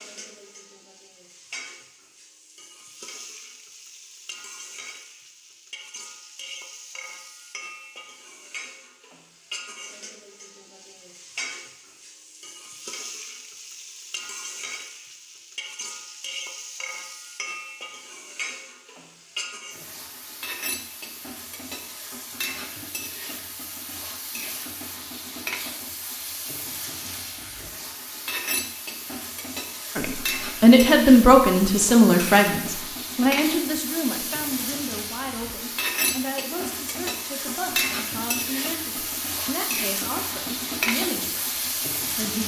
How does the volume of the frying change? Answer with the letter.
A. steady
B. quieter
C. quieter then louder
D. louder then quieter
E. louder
E.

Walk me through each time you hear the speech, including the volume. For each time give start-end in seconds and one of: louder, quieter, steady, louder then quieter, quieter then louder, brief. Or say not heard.
29.9-42.4 quieter.